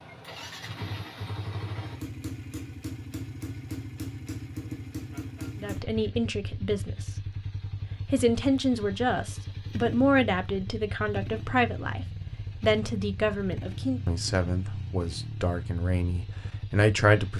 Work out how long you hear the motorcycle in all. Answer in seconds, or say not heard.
17 s.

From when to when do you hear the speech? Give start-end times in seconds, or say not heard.
5.5-7.0, 8.1-17.3.